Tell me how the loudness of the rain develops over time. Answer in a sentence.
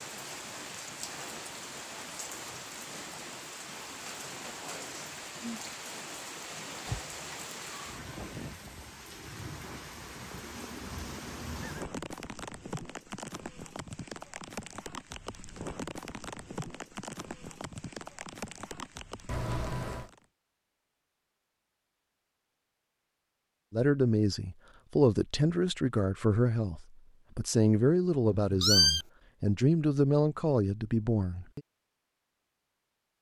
The loudness of the rain stays about the same.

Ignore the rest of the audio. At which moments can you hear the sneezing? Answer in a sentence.
You can't hear the sneezing here.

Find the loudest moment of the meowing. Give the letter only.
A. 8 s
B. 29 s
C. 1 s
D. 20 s
B.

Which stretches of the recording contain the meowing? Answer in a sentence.
You can hear the meowing from 6.8 to 8.0 s, from 19.2 to 20.1 s and from 28.4 to 29.1 s.